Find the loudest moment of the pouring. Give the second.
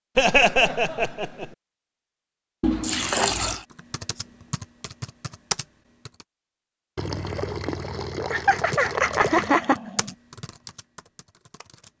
3 s.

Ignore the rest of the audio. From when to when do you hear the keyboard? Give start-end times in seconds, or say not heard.
3.7-6.2, 8.6-11.9.